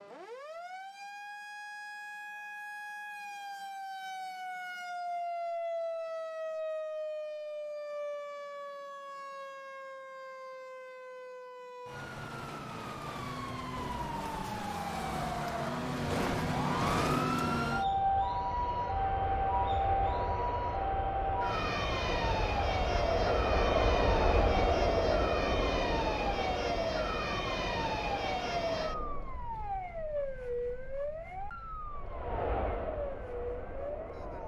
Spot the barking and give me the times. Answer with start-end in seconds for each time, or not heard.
not heard.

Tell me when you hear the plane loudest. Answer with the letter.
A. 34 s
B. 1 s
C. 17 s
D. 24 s
D.